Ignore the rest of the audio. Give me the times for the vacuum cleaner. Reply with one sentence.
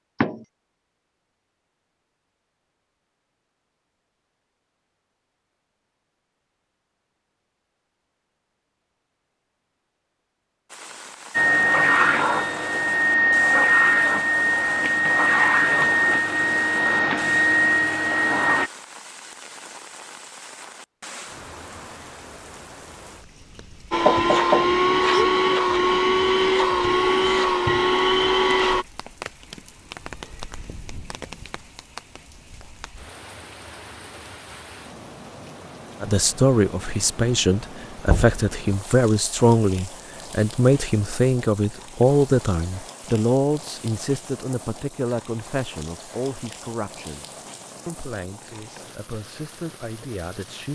You can hear the vacuum cleaner from 11.3 to 18.7 s and from 23.9 to 28.9 s.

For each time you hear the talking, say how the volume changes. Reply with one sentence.
The talking can be heard from 36.0 to 50.6 s, getting quieter.